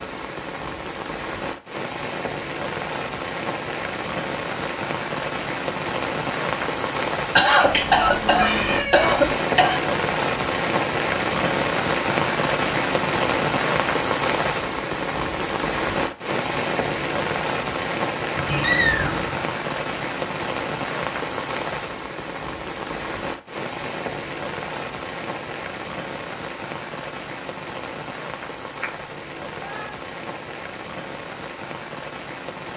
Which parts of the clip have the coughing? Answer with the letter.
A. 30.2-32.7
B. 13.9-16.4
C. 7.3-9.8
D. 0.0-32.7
C.